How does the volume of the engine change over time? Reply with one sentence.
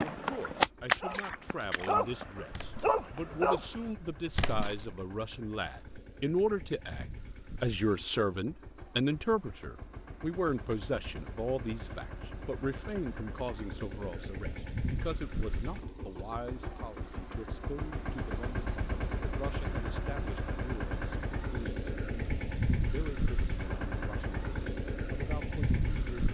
The volume of the engine goes up.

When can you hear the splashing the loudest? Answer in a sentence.
The volume of the splashing peaks at 1 second.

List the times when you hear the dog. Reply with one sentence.
The dog can be heard from 0.0 to 3.9 s.